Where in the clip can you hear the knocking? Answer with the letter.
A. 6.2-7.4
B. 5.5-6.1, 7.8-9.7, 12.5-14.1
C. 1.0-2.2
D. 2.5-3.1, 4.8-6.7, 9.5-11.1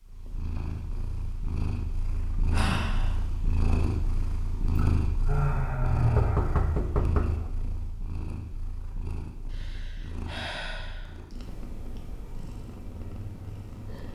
A.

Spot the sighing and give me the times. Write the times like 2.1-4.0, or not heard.
2.5-3.1, 4.8-6.7, 9.5-11.1.